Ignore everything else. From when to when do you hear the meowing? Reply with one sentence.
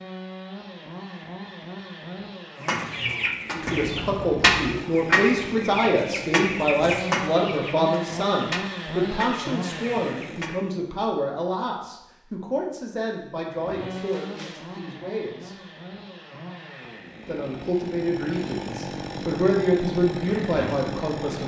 The meowing can't be heard in this clip.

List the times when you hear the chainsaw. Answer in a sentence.
The chainsaw can be heard from 0.0 to 10.6 s and from 13.6 to 21.4 s.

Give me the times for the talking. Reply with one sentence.
You can hear the talking from 3.5 to 15.6 s and from 17.2 to 21.4 s.